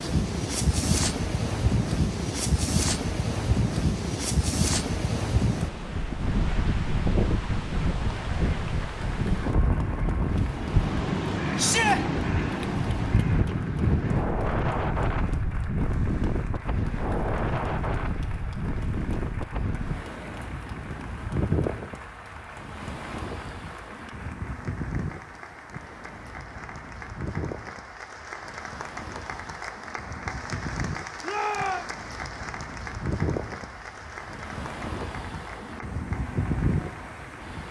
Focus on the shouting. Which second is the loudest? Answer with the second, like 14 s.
12 s.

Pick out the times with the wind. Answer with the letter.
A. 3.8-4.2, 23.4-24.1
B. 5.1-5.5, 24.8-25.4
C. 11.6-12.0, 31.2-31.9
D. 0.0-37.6
D.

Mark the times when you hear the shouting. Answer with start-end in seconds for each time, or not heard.
11.6-12.0, 31.2-31.9.